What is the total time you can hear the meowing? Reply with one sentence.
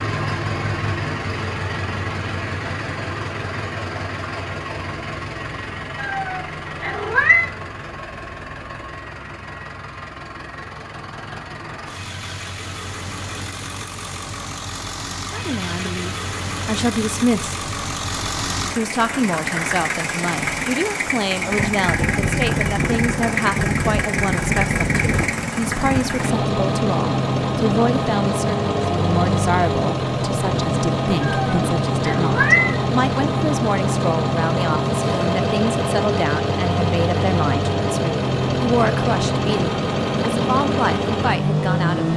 The meowing can be heard for 3 seconds in total.